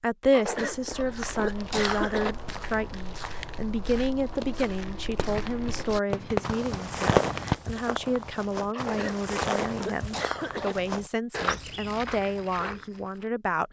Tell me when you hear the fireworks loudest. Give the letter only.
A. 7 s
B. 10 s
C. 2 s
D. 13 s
A.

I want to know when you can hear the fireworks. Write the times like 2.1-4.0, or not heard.
5.2-7.5.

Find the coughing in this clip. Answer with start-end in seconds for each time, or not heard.
0.3-2.4, 8.7-10.8.